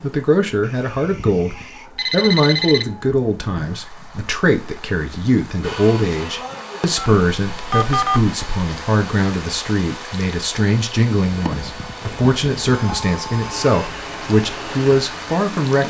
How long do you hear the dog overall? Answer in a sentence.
The dog can't be heard in this clip.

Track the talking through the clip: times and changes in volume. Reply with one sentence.
You can hear the talking from 0.0 to 15.8 s, at a steady volume.